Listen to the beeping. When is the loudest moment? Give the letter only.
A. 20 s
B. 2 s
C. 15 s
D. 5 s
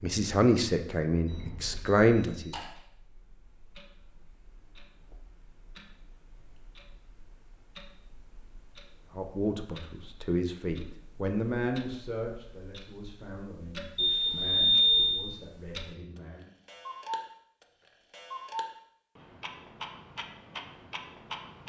C.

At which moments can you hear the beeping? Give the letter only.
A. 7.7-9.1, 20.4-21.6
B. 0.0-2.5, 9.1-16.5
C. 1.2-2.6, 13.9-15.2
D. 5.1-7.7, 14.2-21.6
C.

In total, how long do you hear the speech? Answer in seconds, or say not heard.
10 s.